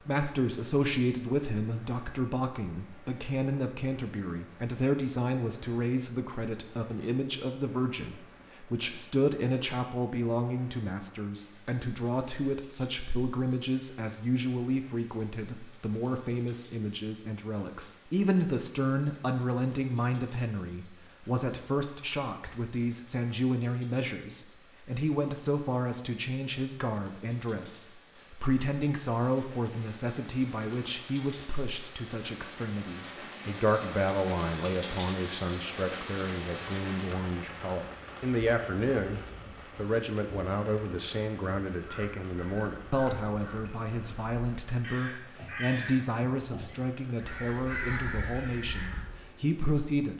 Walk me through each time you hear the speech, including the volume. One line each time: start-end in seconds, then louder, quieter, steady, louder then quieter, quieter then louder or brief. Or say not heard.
0.1-50.1 steady.